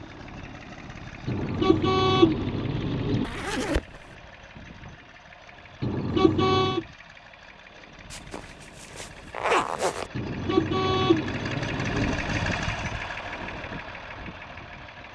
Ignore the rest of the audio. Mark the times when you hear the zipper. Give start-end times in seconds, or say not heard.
3.2-4.0, 8.1-10.1.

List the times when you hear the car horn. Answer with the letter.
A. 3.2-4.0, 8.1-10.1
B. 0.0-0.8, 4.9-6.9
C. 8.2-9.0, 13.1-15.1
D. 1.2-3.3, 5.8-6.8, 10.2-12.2
D.